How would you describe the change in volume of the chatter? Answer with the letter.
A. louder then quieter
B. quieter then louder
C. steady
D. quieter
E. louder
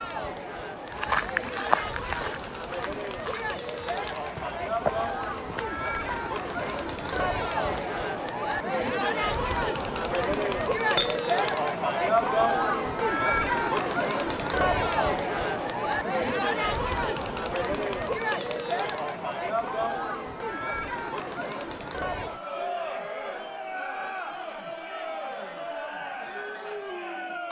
A.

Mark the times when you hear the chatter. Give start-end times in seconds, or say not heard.
0.0-27.4.